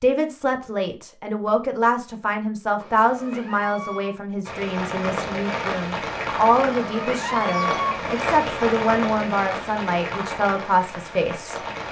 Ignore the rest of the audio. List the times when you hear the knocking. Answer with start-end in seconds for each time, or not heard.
not heard.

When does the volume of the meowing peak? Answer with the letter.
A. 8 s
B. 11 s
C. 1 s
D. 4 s
A.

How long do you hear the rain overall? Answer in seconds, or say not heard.
7 s.